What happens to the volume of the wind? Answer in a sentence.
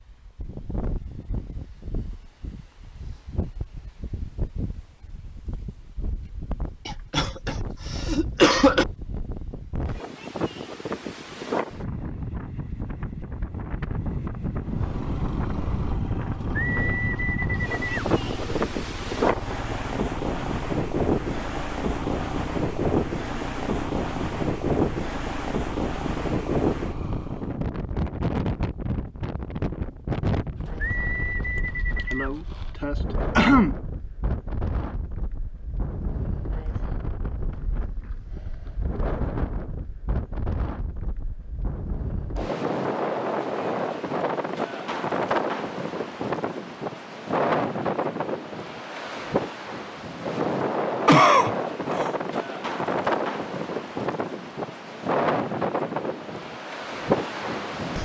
The volume of the wind goes up.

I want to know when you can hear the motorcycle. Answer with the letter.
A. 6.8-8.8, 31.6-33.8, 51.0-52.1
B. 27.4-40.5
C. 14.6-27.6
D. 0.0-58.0
C.